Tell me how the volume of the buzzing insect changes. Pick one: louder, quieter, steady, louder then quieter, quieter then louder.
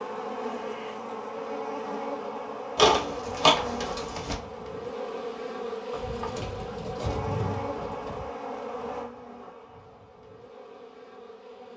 quieter.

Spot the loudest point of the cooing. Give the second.
3 s.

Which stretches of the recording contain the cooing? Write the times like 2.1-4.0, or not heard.
2.8-4.3, 5.9-8.2.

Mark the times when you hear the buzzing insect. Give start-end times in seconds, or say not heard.
0.0-11.7.